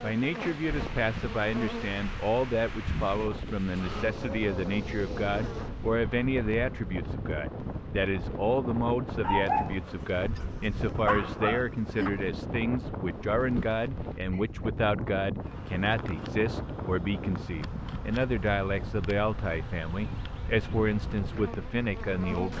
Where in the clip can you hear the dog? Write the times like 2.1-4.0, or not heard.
9.2-12.1.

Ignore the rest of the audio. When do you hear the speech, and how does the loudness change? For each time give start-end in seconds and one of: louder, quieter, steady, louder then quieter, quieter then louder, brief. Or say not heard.
0.0-22.5 steady.